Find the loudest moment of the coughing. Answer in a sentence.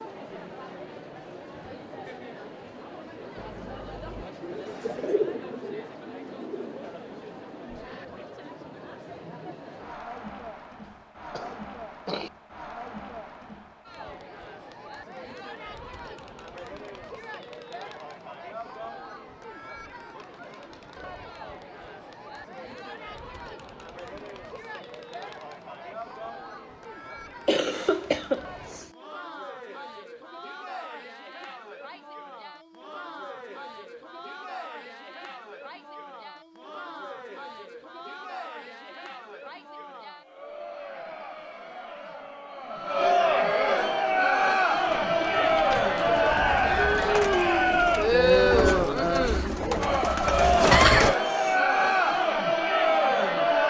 The volume of the coughing peaks at 51 seconds.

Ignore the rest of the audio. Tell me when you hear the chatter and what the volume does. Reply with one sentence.
The chatter can be heard from 0.0 to 53.6 s, getting louder.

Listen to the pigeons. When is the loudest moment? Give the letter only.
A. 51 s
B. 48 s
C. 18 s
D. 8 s
A.